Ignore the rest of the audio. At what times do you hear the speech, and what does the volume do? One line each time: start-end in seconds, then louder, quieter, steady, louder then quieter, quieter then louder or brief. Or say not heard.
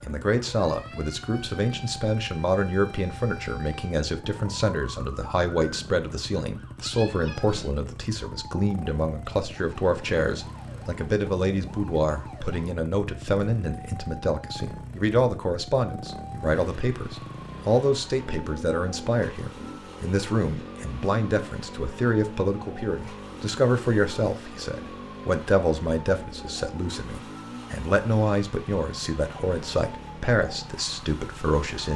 0.0-31.9 steady.